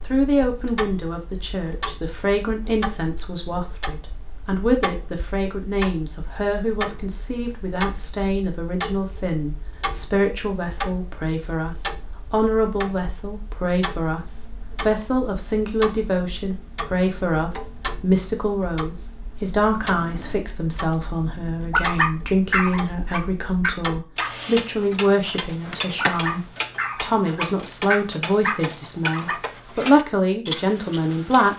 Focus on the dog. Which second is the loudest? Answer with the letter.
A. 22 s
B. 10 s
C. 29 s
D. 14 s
A.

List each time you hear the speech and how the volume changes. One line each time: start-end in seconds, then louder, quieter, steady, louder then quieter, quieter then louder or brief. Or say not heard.
0.1-31.5 steady.